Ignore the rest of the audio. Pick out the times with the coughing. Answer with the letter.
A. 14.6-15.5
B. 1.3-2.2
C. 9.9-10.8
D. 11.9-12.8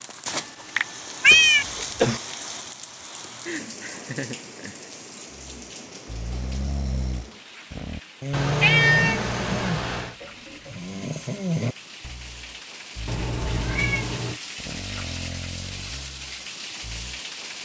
B.